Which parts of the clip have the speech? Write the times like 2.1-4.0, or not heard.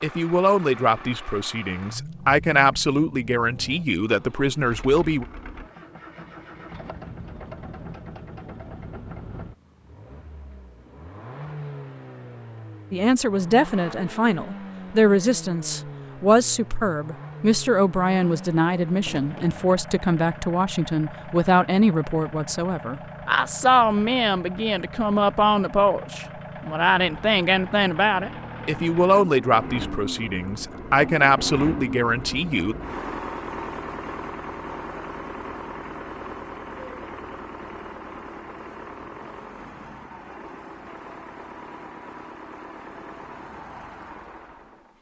0.0-5.2, 12.9-32.8.